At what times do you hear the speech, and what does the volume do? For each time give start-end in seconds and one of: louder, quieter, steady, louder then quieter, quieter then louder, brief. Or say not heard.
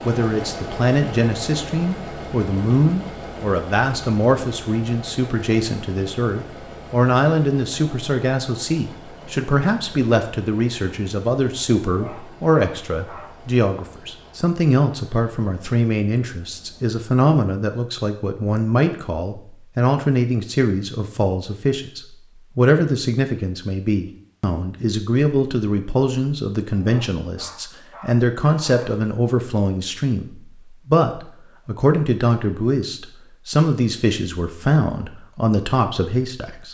0.1-36.6 steady.